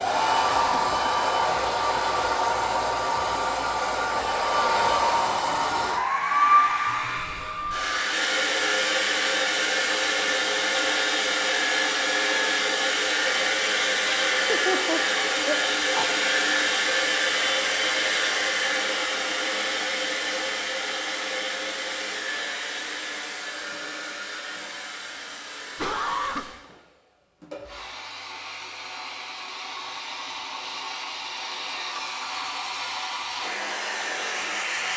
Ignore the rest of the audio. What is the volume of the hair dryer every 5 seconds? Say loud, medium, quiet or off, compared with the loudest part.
loud, loud, loud, loud, medium, quiet, medium.